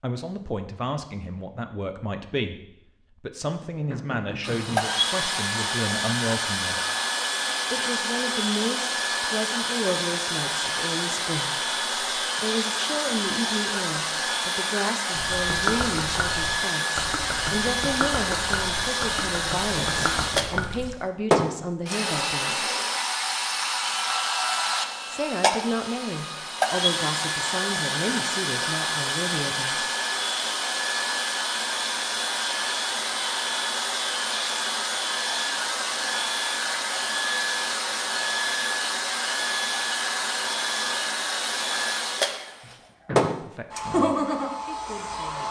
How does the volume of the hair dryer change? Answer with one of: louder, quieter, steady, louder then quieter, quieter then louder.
steady.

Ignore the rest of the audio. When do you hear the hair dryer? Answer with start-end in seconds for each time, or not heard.
4.4-45.4.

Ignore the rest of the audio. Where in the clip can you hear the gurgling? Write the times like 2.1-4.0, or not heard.
15.1-20.9.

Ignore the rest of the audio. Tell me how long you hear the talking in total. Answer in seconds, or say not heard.
29 s.